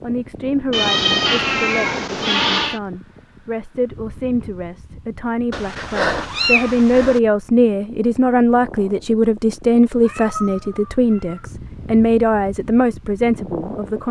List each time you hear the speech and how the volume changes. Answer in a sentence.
You can hear the speech from 0.0 to 14.0 s, getting louder.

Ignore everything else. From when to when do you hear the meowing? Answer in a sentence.
The meowing can be heard from 0.7 to 2.8 s, from 5.5 to 7.2 s and from 10.0 to 11.5 s.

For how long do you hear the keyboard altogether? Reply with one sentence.
The keyboard can't be heard in this clip.